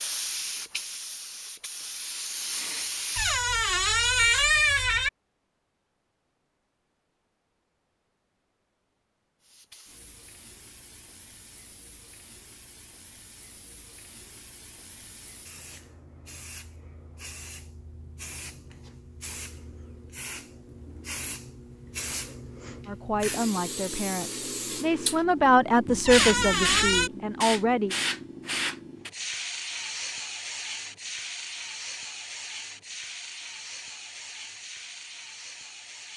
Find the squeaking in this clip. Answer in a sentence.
You can hear the squeaking from 3.1 to 5.1 s and from 26.1 to 27.1 s.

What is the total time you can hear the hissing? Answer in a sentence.
You can hear the hissing for 30 seconds altogether.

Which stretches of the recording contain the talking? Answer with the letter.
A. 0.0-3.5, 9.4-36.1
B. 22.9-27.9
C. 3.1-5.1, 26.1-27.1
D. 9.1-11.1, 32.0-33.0
B.